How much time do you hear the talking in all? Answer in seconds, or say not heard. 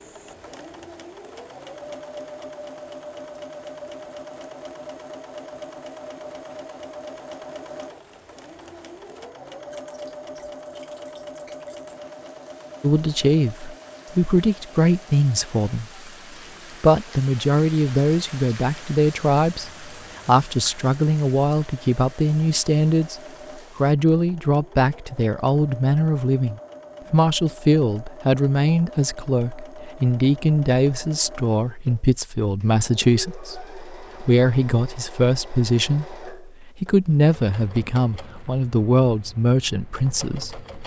27 s.